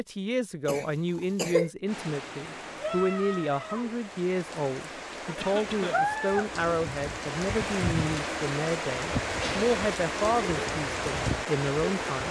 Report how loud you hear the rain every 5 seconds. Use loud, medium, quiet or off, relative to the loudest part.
medium, loud, loud.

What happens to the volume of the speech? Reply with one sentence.
The loudness of the speech stays about the same.